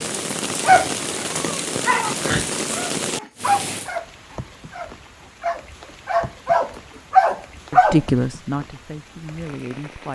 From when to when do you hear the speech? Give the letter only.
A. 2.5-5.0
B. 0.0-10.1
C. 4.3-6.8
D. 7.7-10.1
D.